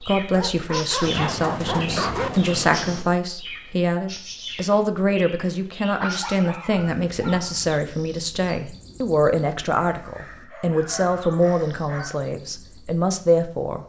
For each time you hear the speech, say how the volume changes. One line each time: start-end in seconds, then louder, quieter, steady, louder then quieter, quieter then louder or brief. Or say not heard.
0.0-13.8 steady.